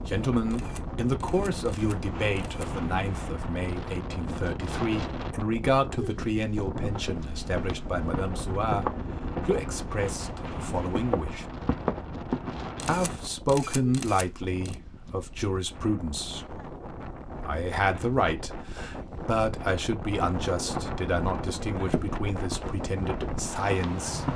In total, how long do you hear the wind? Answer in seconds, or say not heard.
24 s.